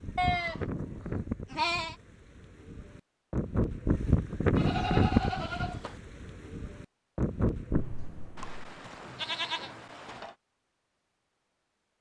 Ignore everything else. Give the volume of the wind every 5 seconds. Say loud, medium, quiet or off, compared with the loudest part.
loud, loud, off.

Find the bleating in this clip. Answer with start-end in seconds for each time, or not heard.
0.1-1.9, 4.5-6.0, 8.3-10.3.